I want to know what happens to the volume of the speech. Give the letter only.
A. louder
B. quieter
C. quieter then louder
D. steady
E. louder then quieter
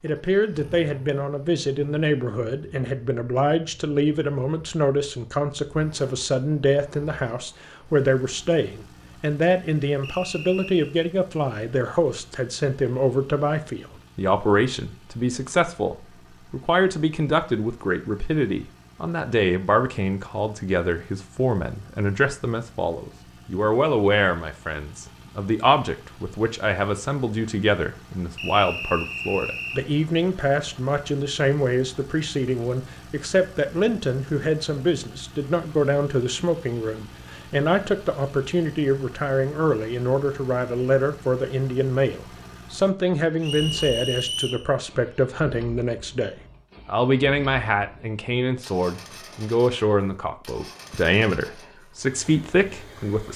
D.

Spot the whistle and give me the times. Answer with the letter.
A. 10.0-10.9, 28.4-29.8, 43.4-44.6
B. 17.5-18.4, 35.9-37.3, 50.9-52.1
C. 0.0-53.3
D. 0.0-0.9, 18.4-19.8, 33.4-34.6
A.